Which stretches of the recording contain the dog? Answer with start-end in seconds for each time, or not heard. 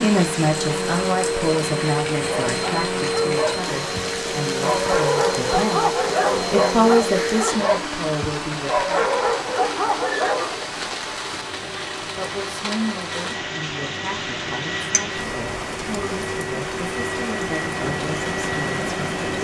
2.5-10.7.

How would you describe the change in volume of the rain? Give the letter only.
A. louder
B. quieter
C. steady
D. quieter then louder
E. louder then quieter
C.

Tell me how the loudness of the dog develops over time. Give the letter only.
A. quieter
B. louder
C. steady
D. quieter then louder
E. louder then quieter
B.